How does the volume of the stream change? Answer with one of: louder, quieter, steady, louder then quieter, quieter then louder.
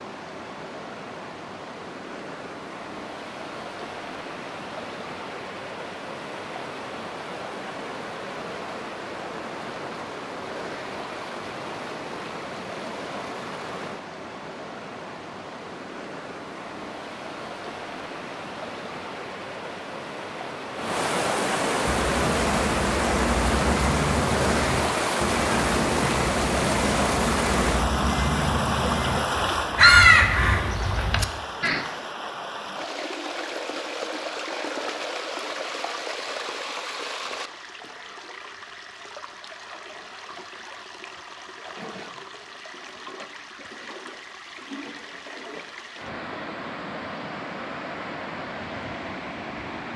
louder then quieter.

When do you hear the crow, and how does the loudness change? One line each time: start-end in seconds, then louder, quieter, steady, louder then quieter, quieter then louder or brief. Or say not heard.
21.8-31.9 louder.